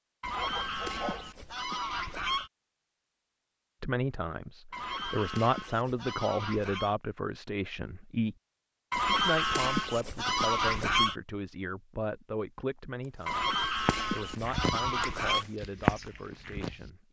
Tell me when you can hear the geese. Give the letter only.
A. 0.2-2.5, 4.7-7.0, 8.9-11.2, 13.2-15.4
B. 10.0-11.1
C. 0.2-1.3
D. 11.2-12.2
A.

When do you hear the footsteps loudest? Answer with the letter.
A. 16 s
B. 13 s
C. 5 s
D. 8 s
A.